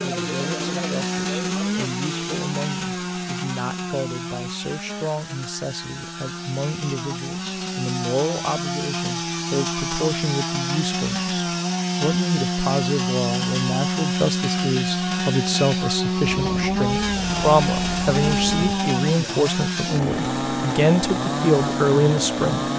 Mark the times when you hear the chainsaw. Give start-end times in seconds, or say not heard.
0.0-22.7.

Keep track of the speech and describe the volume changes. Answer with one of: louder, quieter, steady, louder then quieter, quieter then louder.
louder.